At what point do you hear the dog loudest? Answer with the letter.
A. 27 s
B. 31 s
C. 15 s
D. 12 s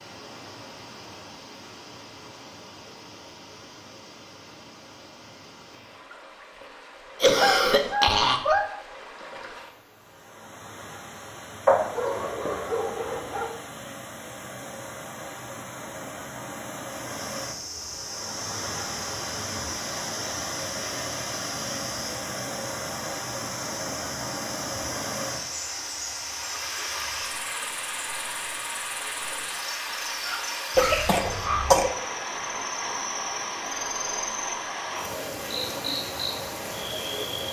D.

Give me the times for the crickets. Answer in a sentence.
You can hear the crickets from 16.9 to 37.4 s.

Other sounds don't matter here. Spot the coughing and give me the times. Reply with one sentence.
The coughing can be heard from 7.2 to 8.7 s and from 30.8 to 31.9 s.